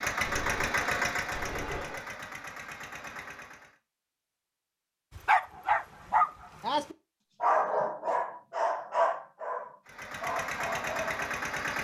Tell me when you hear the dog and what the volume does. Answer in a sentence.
You can hear the dog from 5.2 to 11.3 s, getting quieter.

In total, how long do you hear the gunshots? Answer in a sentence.
You can hear the gunshots for 2 seconds altogether.